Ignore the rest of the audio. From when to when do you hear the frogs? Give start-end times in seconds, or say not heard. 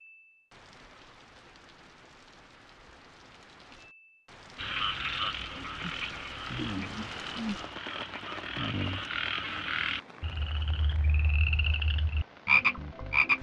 4.5-13.3.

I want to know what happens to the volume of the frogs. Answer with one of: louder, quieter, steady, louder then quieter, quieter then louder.
louder.